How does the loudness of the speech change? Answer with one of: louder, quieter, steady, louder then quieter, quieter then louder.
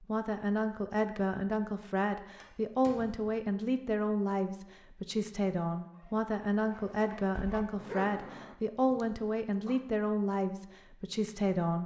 steady.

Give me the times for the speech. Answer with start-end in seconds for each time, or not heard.
0.0-11.8.